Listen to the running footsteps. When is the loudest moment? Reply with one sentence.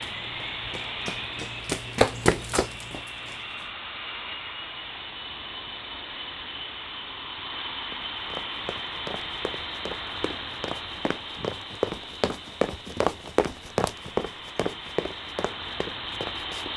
The volume of the running footsteps peaks at 2 seconds.